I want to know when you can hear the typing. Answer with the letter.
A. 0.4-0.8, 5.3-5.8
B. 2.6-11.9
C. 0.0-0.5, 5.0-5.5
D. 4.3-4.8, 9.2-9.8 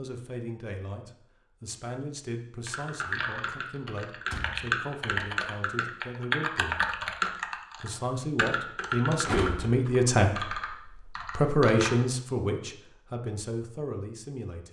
B.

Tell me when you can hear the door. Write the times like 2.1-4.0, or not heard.
4.3-4.8, 9.2-9.8.